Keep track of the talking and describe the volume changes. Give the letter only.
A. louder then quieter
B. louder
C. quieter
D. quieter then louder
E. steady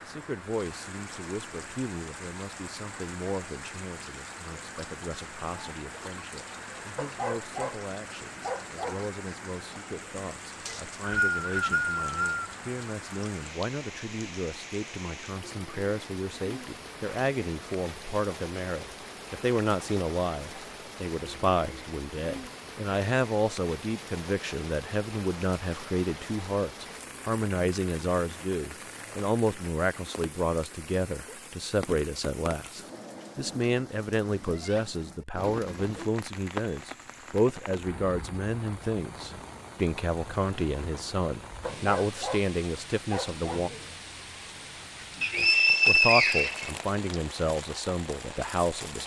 B.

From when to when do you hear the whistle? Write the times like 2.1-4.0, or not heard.
10.7-12.6, 45.2-47.1.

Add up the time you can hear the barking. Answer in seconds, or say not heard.
4 s.